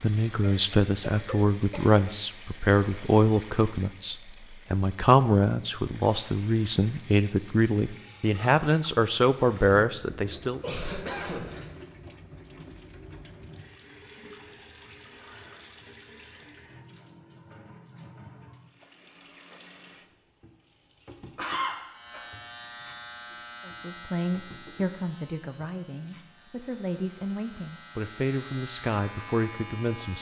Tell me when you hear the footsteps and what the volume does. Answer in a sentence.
The footsteps can't be heard in this clip.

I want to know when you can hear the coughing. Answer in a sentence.
You can hear the coughing from 0.4 to 1.9 s, from 10.6 to 11.7 s and from 21.4 to 22.2 s.